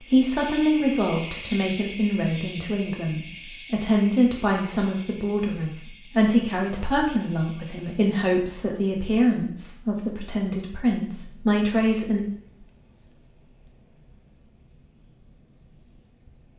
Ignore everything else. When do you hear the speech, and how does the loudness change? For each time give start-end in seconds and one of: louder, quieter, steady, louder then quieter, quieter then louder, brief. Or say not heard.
0.0-12.2 steady.